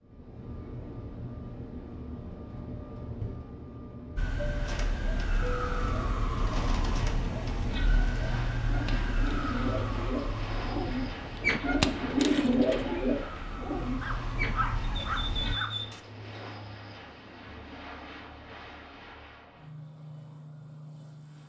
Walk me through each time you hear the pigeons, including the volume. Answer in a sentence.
You can hear the pigeons from 4.6 to 16.3 s, getting louder then quieter.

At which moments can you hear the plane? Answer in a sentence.
The plane can be heard from 0.0 to 21.4 s.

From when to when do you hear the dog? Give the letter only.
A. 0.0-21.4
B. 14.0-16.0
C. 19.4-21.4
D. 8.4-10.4
B.